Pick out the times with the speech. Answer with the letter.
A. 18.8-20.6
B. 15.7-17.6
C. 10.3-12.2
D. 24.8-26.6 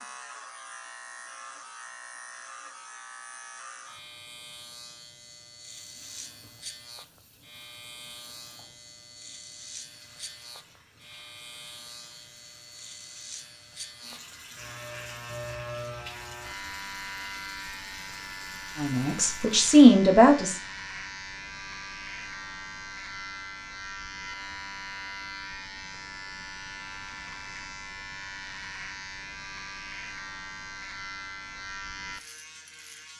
A.